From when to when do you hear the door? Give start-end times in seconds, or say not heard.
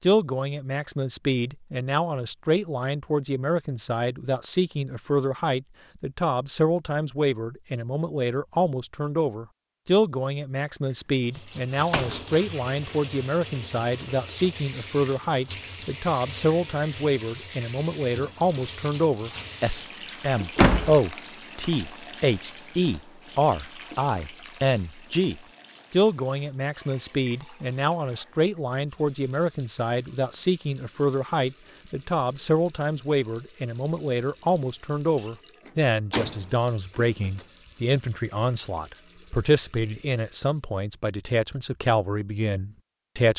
11.8-12.4, 20.6-21.0, 35.6-37.5.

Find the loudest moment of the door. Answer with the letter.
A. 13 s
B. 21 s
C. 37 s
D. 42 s
B.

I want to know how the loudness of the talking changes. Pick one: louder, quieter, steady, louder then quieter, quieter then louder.
steady.